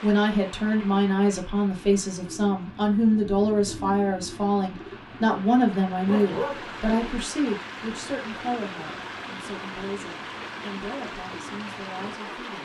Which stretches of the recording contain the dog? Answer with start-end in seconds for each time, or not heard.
6.0-6.7.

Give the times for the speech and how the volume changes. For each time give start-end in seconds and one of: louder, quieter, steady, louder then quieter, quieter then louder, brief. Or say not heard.
0.0-12.6 quieter.